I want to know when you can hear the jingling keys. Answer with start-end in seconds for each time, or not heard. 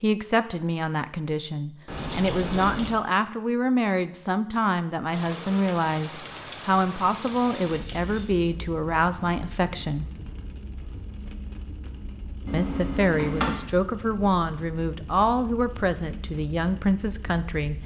1.9-3.0, 7.2-8.3, 12.4-13.6.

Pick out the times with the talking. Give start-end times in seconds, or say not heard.
0.0-10.1, 12.5-17.8.